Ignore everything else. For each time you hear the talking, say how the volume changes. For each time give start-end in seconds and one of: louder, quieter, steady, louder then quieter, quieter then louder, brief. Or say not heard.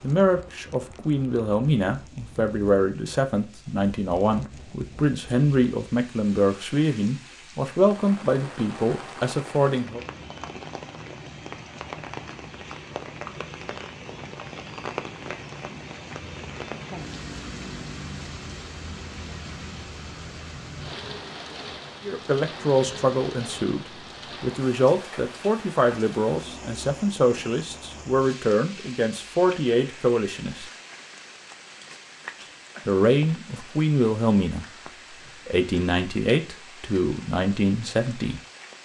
0.0-10.0 steady
22.1-30.7 steady
32.9-34.6 brief
35.5-38.4 brief.